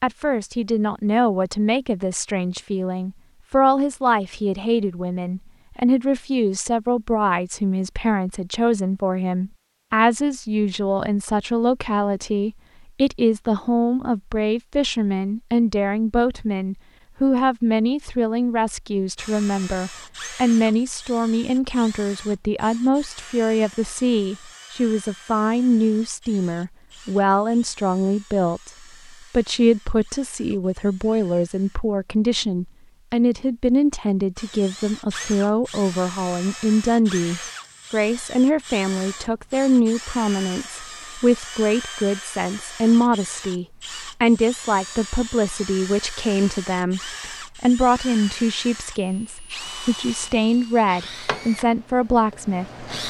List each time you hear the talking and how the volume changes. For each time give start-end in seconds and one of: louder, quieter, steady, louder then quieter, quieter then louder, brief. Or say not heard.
0.0-52.9 steady.